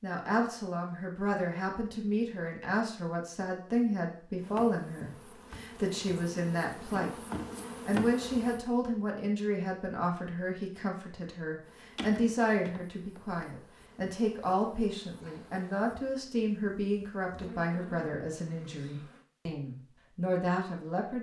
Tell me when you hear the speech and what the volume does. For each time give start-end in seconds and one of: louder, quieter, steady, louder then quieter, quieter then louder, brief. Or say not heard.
0.0-7.2 steady
7.8-21.1 steady.